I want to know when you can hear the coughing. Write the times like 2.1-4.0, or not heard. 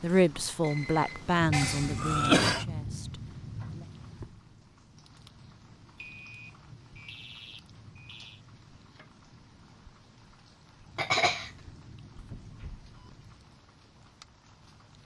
1.5-2.6, 10.9-11.5.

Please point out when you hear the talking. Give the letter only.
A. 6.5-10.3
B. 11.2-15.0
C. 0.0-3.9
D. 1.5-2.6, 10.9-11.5
C.